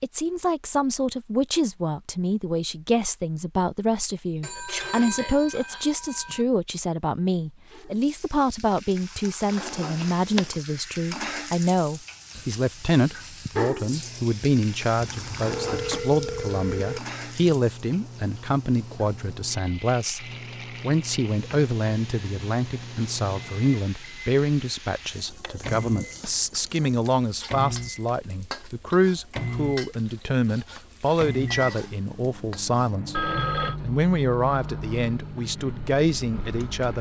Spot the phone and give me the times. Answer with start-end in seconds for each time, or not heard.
4.4-6.5, 14.9-17.0, 33.1-33.8.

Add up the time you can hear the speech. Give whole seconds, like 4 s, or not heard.
36 s.